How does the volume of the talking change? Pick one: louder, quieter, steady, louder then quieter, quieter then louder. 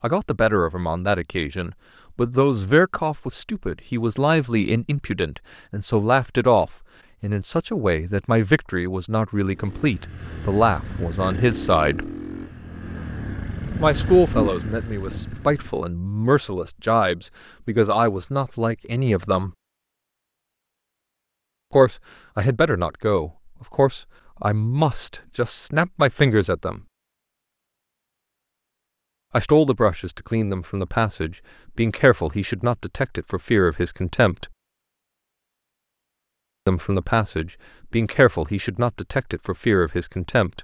steady.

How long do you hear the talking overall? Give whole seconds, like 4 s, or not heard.
32 s.